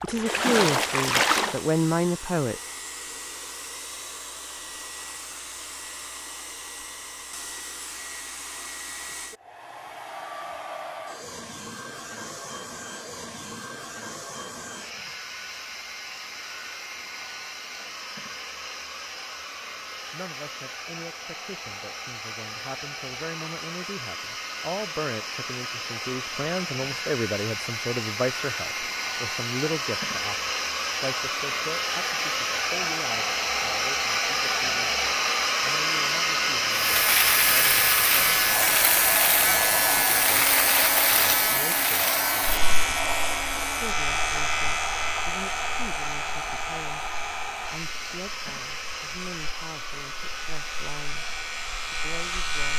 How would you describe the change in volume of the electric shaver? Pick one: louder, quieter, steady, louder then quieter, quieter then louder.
quieter.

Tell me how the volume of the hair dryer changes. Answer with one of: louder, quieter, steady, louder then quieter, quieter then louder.
louder then quieter.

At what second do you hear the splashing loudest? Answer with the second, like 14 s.
1 s.